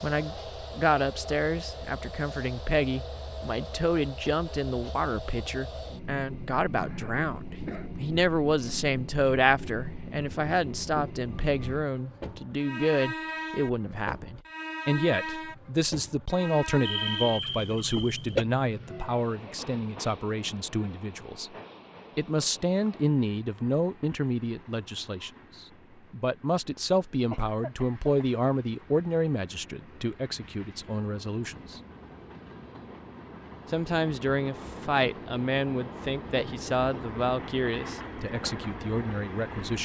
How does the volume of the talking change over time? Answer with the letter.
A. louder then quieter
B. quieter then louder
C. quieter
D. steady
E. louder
D.